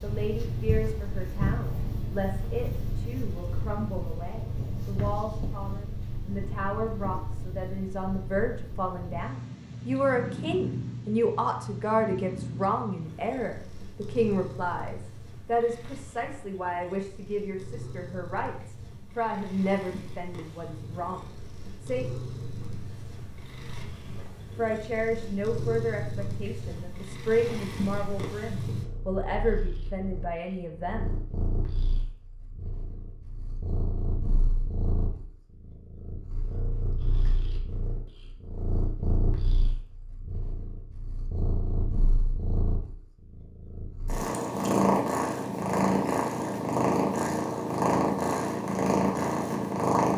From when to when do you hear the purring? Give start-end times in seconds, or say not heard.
0.0-50.1.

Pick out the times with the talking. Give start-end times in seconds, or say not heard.
0.0-22.1, 24.6-31.1.